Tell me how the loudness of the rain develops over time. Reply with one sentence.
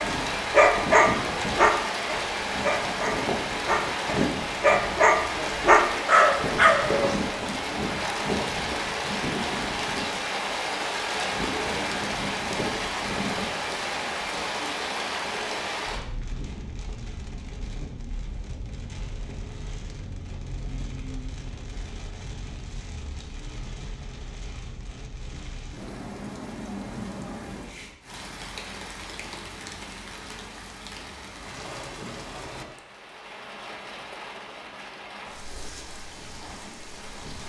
The volume of the rain goes down.